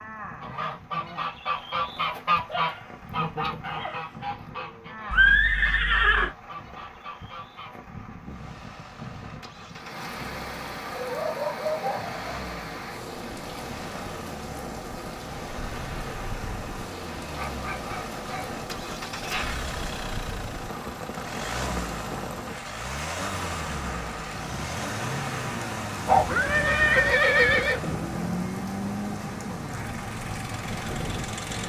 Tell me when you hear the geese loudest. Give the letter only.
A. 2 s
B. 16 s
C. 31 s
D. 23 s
A.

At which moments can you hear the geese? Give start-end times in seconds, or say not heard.
0.4-7.8.